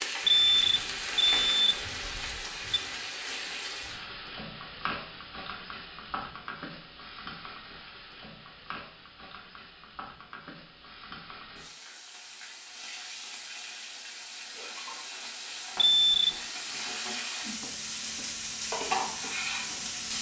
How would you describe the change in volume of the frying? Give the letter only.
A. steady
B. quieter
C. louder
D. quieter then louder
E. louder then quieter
D.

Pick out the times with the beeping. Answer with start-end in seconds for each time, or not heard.
0.2-2.8, 15.8-16.3.